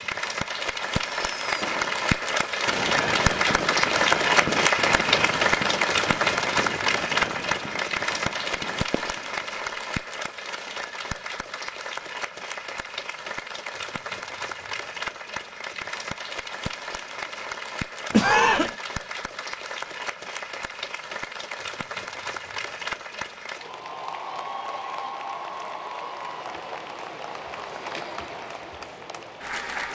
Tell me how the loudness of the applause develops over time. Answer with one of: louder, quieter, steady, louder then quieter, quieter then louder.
quieter.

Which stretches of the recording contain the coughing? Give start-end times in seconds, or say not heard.
18.1-18.8.